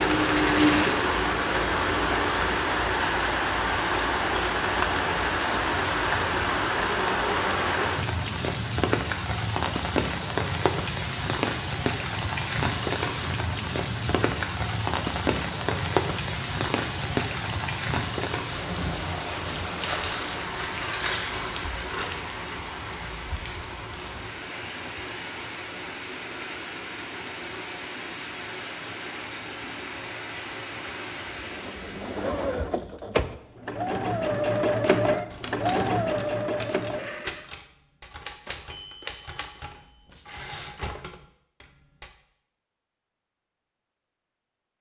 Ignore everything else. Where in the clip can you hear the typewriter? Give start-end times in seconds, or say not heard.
35.0-42.1.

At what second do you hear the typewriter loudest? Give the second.
37 s.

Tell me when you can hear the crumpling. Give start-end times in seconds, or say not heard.
19.8-22.1.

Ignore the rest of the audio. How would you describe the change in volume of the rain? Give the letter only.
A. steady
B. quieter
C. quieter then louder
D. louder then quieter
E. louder
B.